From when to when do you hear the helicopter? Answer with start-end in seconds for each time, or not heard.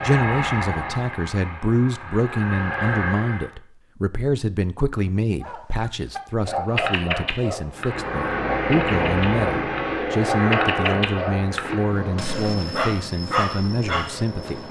0.0-3.5, 7.8-14.6.